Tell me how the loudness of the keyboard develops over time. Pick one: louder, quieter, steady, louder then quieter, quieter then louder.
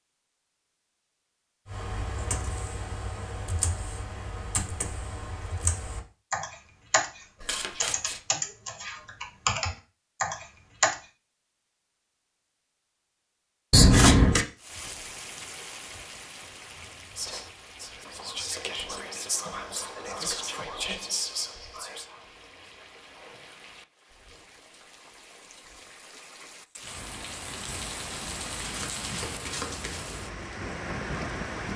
louder.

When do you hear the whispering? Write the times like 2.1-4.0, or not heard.
17.1-23.6.